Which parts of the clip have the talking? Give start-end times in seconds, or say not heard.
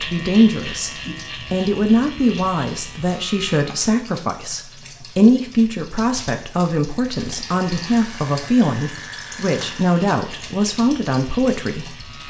0.0-0.9, 1.5-12.1.